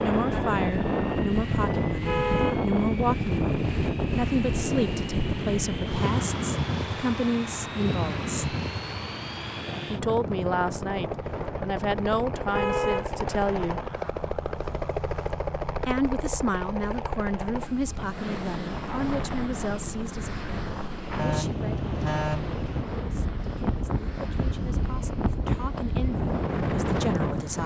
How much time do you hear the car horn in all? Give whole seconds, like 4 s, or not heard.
4 s.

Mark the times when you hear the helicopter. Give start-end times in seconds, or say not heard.
0.0-27.6.